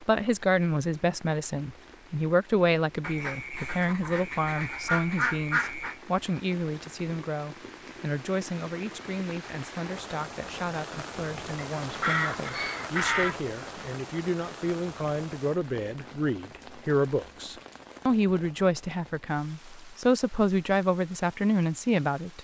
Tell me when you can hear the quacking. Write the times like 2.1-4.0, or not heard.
3.0-6.0, 11.6-13.4.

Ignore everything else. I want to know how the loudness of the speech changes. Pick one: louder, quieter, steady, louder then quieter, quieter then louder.
quieter then louder.